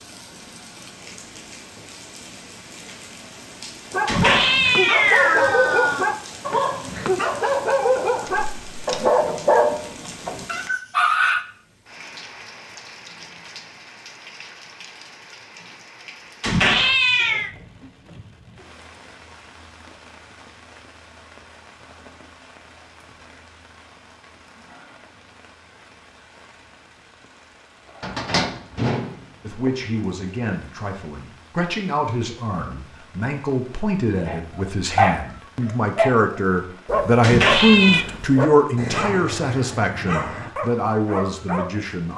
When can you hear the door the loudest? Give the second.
28 s.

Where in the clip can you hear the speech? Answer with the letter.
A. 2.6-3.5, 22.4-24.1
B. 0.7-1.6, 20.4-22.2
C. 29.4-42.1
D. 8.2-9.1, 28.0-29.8
C.